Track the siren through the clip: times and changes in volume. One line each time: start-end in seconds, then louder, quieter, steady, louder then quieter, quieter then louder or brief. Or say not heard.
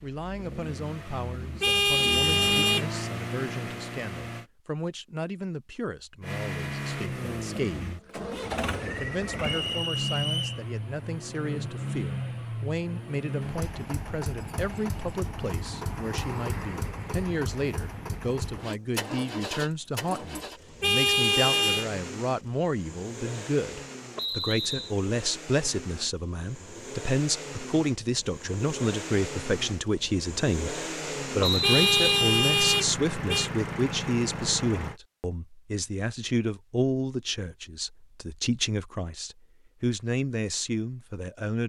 not heard.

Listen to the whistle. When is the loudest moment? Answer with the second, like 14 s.
32 s.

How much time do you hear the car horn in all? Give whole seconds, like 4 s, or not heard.
4 s.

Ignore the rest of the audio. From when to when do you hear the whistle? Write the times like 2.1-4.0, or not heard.
9.4-10.6, 24.1-24.9, 31.4-32.0.